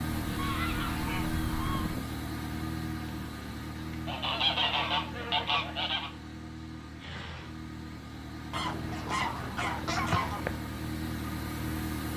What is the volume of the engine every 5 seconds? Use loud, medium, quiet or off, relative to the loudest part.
loud, medium, loud.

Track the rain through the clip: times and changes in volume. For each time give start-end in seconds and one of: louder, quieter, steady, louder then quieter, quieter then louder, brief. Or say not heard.
not heard.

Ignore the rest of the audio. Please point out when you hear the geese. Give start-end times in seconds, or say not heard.
0.1-2.0, 4.0-6.1, 8.5-10.6.